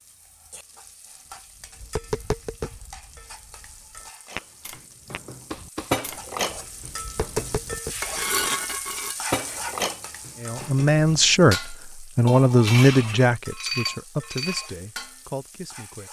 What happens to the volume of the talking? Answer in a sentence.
The volume of the talking goes down.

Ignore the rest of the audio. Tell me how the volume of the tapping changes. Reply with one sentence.
The volume of the tapping goes down, then up.